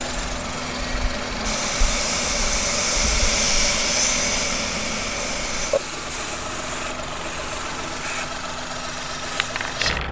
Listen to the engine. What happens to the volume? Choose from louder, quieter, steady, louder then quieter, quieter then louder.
steady.